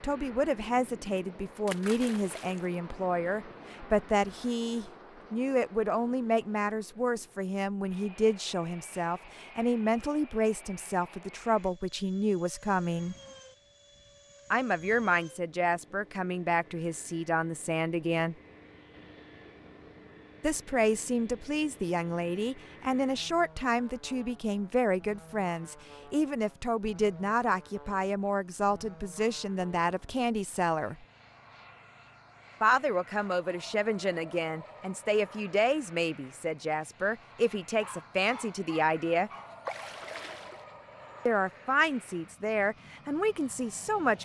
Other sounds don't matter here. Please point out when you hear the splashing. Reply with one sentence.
The splashing can be heard from 1.6 to 2.7 s and from 39.6 to 40.6 s.